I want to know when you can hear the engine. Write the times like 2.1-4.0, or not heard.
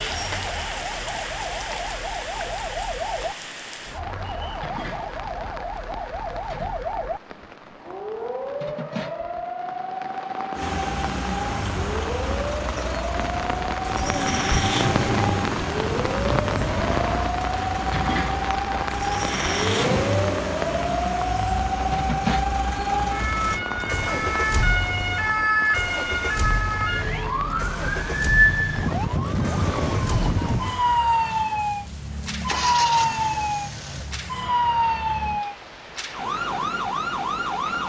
10.6-35.5.